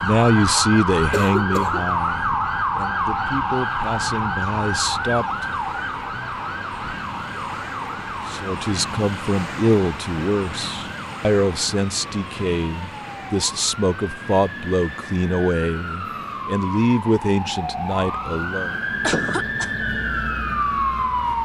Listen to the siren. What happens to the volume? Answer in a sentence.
The volume of the siren goes down, then up.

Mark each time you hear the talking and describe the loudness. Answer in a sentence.
The talking can be heard from 0.0 to 5.5 s, getting quieter then louder; and from 8.2 to 18.8 s, at a steady volume.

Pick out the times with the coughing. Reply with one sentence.
The coughing can be heard from 1.1 to 1.9 s and from 19.0 to 19.8 s.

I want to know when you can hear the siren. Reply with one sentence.
The siren can be heard from 0.0 to 21.4 s.